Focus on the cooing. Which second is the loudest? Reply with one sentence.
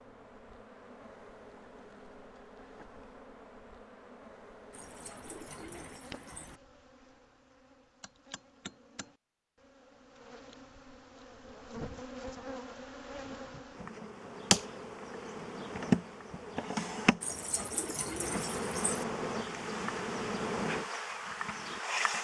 The loudest moment of the cooing is at 18 seconds.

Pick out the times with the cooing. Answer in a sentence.
You can hear the cooing from 4.7 to 6.6 s and from 17.2 to 19.1 s.